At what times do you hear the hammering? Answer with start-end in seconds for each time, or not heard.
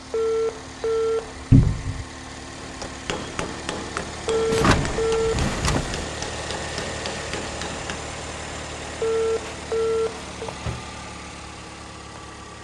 2.5-8.0.